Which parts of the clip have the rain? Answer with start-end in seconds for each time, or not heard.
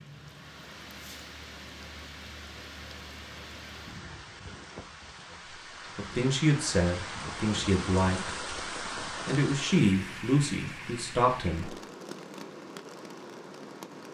0.0-14.0.